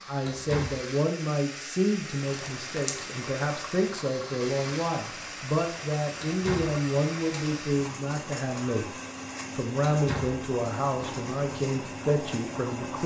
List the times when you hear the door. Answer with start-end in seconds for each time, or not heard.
0.2-0.8, 6.2-6.8, 9.8-10.4.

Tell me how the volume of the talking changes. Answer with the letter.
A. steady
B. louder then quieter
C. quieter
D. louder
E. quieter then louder
A.